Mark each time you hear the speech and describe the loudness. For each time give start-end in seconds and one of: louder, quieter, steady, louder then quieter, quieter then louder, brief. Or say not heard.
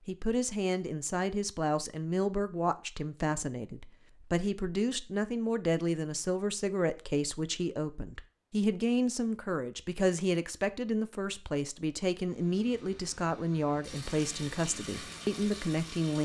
0.1-16.1 steady.